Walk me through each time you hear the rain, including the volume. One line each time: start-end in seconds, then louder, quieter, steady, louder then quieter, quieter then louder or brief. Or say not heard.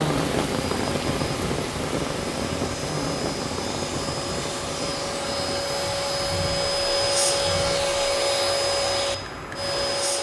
0.0-10.1 quieter.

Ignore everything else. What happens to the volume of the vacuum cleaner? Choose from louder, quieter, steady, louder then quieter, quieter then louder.
louder.